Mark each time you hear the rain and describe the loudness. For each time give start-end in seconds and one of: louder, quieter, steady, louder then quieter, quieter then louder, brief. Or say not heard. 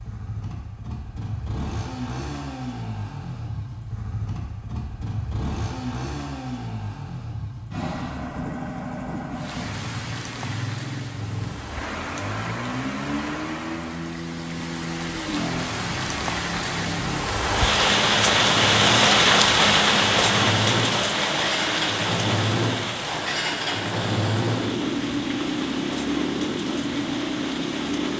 9.3-28.1 louder then quieter.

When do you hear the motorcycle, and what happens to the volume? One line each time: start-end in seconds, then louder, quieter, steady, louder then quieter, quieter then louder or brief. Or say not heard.
0.0-28.1 louder.